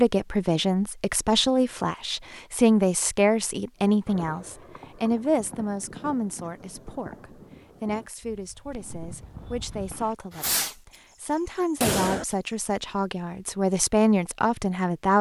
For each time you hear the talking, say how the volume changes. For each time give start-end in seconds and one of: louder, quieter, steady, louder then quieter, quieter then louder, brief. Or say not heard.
0.0-15.1 quieter then louder.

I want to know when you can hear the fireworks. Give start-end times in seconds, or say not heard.
3.8-10.9, 11.8-12.3.